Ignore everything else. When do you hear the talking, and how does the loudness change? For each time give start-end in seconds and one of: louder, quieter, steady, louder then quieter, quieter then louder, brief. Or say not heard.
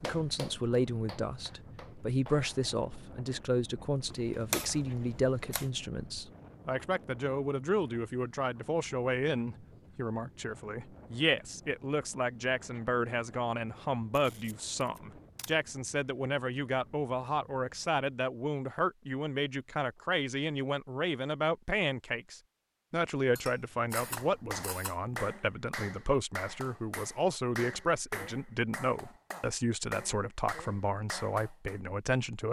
0.0-32.4 steady.